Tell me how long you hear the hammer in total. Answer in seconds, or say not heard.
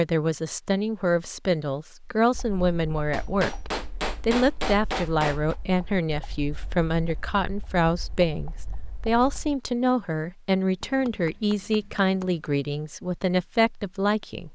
4 s.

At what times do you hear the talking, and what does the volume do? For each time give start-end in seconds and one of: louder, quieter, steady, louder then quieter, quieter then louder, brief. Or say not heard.
0.0-14.5 steady.